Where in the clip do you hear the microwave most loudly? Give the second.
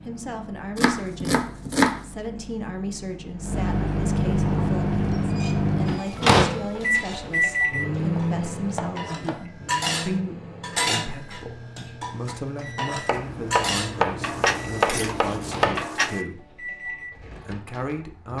6 s.